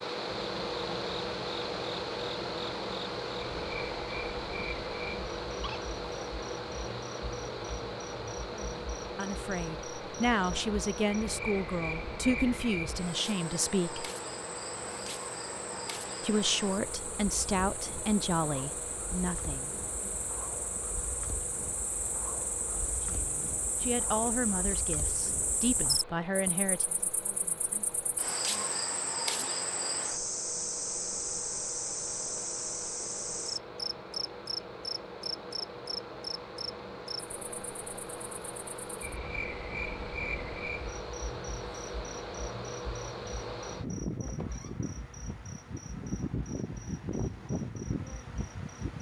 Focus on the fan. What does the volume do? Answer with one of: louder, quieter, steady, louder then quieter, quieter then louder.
quieter then louder.